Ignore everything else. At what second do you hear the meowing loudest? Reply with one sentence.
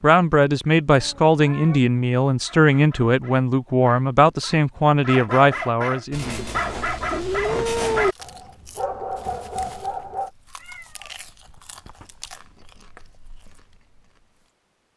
The volume of the meowing peaks at 8 seconds.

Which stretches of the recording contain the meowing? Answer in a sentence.
The meowing can be heard from 0.8 to 1.8 s, from 6.1 to 8.2 s and from 10.6 to 12.3 s.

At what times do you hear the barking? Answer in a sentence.
The barking can be heard from 2.4 to 10.3 s.